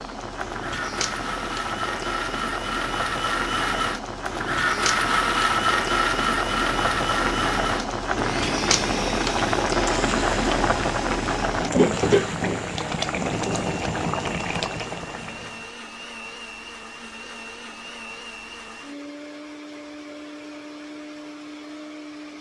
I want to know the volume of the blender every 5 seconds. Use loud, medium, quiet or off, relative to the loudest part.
loud, loud, medium, quiet, quiet.